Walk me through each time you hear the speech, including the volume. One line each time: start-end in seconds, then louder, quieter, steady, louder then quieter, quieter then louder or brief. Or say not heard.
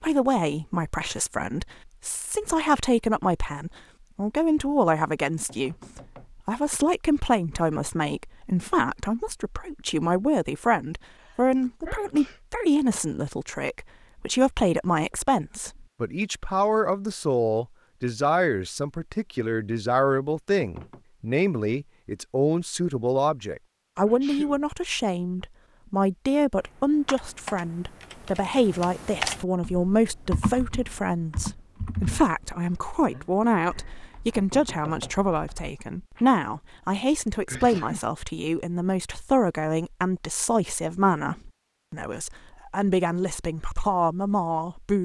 0.0-44.9 steady.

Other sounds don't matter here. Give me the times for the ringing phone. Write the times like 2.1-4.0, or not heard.
not heard.